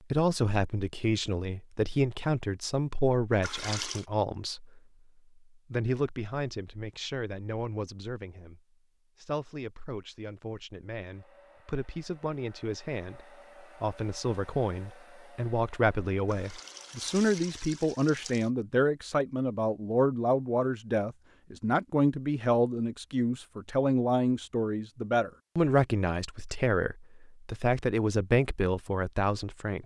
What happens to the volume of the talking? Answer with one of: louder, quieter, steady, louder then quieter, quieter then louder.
quieter then louder.